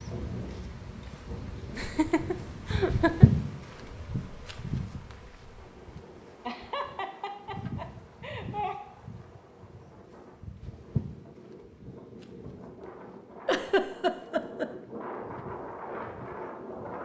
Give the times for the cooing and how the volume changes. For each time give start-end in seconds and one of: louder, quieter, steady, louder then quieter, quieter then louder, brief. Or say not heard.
not heard.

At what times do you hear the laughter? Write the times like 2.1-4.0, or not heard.
1.7-3.2, 6.5-8.8, 13.4-14.7.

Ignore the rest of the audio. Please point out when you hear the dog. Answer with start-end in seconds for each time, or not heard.
not heard.